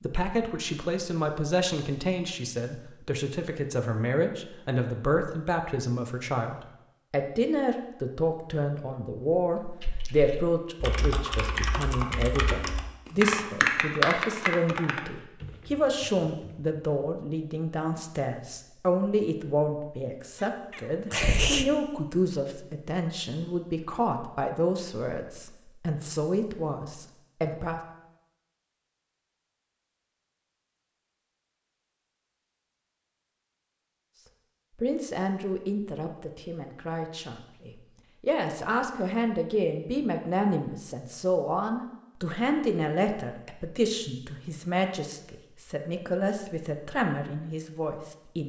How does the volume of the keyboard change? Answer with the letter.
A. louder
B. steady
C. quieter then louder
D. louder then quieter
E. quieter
D.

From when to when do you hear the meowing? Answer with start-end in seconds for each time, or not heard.
20.4-21.7.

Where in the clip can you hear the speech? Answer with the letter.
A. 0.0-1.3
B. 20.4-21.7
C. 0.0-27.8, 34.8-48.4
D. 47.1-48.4
C.